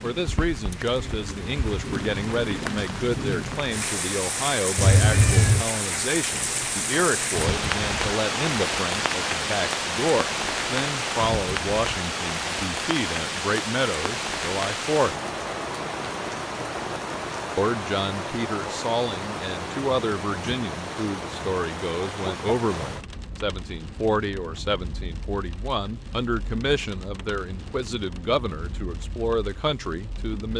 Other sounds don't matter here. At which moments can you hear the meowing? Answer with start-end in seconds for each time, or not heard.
4.8-5.7.